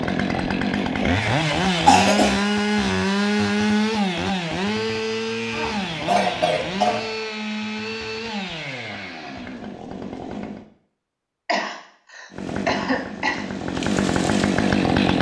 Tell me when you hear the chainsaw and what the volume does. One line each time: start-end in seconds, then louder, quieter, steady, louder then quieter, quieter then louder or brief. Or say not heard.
0.0-10.7 quieter
12.3-15.1 brief.